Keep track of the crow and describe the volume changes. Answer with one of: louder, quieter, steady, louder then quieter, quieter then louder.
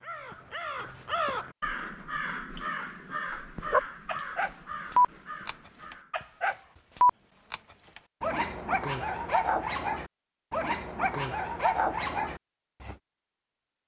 quieter.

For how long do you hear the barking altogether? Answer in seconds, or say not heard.
9 s.